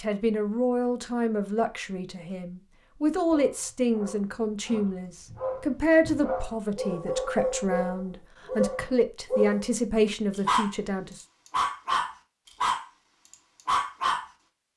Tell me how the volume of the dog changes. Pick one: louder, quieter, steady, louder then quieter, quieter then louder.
louder.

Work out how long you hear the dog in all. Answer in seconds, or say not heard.
11 s.